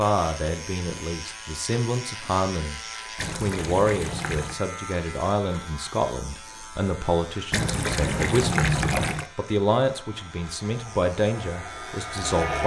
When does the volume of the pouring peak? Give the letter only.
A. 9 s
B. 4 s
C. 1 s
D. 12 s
A.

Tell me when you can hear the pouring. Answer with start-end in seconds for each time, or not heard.
3.1-4.6, 7.5-9.3.